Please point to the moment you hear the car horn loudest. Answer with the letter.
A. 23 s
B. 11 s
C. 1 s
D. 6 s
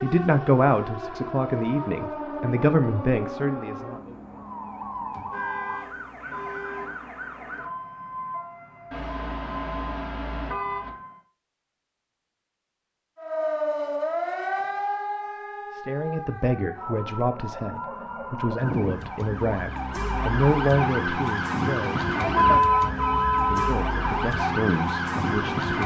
A.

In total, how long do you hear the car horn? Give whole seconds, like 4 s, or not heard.
5 s.